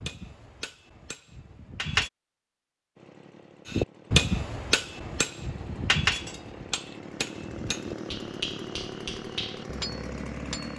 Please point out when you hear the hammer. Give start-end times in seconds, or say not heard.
0.0-2.1, 3.6-10.7.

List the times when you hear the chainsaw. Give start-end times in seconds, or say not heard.
3.0-10.7.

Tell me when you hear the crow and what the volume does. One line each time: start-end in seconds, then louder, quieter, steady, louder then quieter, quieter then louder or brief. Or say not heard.
not heard.